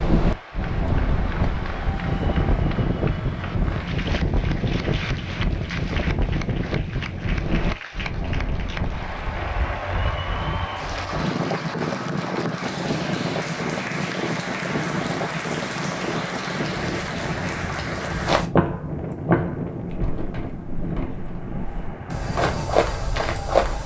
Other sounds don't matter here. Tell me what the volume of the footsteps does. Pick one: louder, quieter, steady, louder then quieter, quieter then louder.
quieter then louder.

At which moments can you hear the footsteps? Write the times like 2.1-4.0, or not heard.
18.1-23.8.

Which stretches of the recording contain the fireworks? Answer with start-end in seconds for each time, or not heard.
not heard.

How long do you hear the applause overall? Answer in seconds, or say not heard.
18 s.